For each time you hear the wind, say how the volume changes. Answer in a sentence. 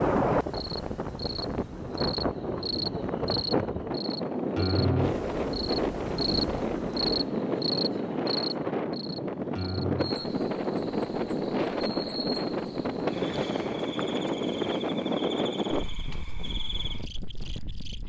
You can hear the wind from 0.0 to 18.0 s, at a steady volume.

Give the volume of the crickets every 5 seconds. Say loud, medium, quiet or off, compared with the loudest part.
loud, loud, medium, medium.